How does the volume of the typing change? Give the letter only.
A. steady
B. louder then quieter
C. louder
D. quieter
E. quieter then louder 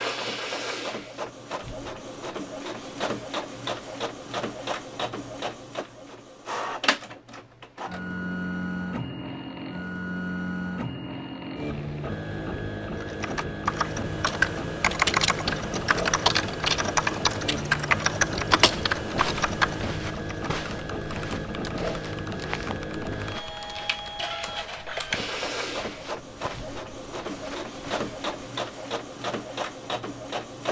D.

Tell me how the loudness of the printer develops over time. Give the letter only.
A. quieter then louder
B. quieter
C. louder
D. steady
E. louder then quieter
D.